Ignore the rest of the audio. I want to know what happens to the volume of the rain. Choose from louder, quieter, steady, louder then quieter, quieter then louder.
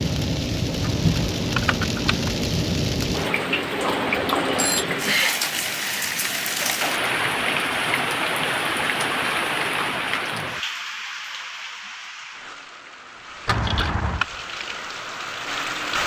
quieter.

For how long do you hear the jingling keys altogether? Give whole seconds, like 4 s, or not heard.
2 s.